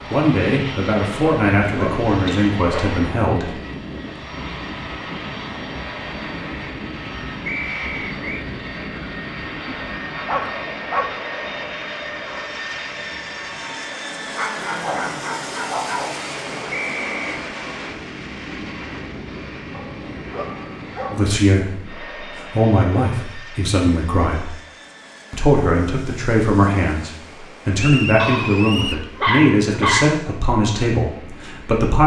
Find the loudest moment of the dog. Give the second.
30 s.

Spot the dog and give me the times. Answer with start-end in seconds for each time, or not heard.
1.2-2.8, 9.7-11.2, 14.3-16.2, 19.7-21.4, 28.1-30.1.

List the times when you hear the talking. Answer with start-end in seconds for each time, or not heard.
0.1-3.5, 21.1-24.5, 25.3-32.0.